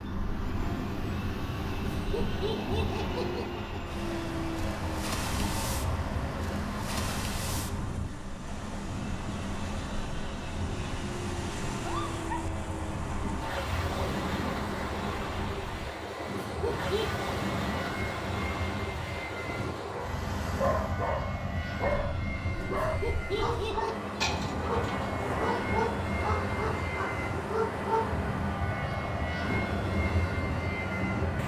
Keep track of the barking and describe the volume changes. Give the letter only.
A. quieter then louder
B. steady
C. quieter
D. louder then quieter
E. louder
B.